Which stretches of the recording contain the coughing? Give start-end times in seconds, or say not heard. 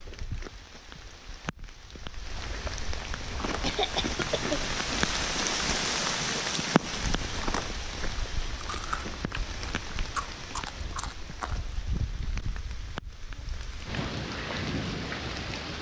3.6-4.7.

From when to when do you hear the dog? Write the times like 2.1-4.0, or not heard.
not heard.